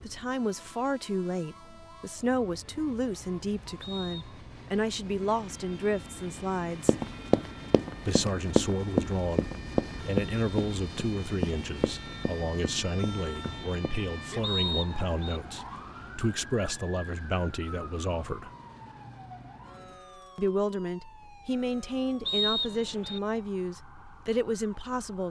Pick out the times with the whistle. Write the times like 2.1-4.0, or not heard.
3.8-4.4, 14.4-15.4, 22.2-23.2.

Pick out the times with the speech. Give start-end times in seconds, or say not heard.
0.1-7.0, 8.1-18.5, 20.4-25.2.